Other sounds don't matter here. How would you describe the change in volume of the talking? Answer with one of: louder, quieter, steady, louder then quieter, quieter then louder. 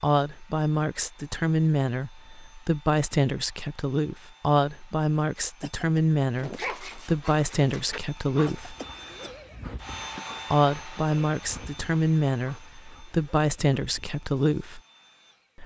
steady.